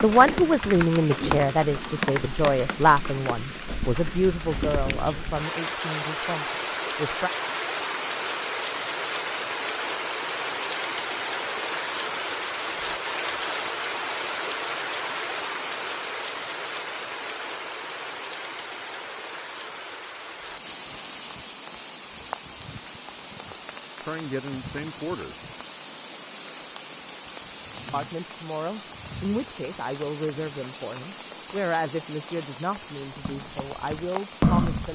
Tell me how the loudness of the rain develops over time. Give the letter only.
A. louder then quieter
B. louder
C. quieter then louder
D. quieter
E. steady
D.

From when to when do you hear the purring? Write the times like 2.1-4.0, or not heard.
not heard.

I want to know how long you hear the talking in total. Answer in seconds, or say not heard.
16 s.